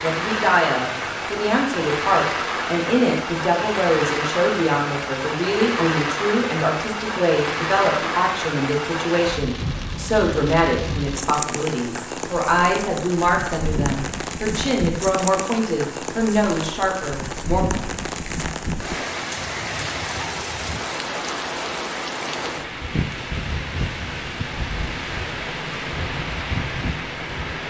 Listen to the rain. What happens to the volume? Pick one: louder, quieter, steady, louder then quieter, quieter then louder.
steady.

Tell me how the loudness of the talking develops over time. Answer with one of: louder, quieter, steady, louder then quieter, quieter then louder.
steady.